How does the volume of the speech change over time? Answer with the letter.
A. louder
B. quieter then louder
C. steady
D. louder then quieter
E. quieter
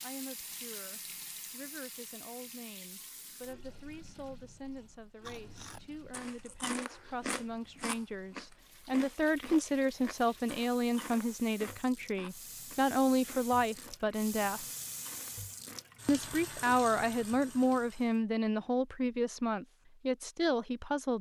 A.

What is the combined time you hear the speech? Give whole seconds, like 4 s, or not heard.
20 s.